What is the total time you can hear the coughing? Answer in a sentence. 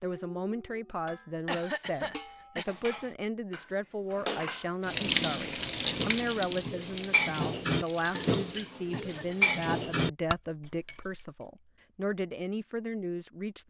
The coughing can be heard for 2 seconds in total.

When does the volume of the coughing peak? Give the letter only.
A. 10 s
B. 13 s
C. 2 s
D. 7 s
C.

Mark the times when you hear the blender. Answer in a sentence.
You can't hear the blender here.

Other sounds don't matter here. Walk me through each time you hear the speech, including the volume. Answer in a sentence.
You can hear the speech from 0.0 to 13.6 s, at a steady volume.